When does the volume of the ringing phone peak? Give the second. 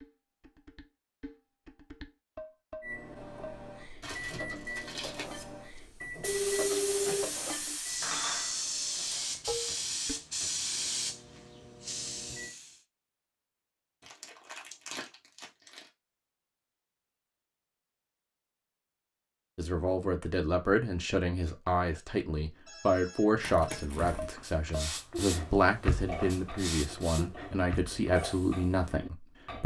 7 s.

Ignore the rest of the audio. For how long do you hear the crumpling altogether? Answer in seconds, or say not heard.
4 s.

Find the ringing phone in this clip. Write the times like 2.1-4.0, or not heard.
6.2-7.3, 22.6-23.9.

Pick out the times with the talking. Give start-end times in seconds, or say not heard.
19.6-29.6.